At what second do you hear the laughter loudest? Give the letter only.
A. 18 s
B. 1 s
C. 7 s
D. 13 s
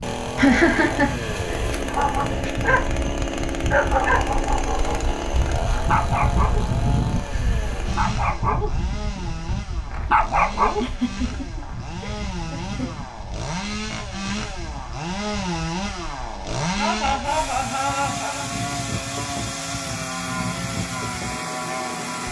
B.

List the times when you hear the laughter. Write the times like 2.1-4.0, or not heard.
0.3-1.1, 10.8-12.9, 16.8-18.4.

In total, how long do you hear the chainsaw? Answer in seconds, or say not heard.
22 s.